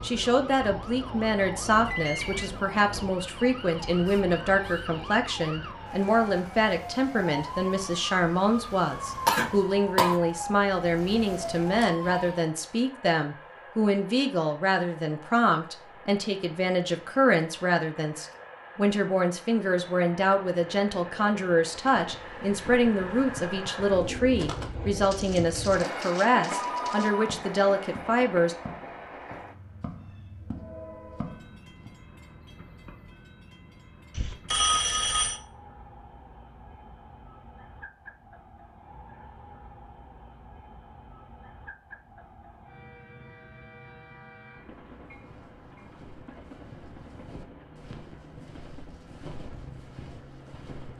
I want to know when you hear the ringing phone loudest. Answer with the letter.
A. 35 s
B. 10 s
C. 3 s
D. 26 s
A.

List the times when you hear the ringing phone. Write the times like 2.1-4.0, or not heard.
1.9-2.5, 26.4-27.3, 34.1-35.4.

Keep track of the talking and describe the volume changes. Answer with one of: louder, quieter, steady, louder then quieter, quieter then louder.
steady.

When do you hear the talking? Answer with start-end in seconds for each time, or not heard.
0.0-28.6.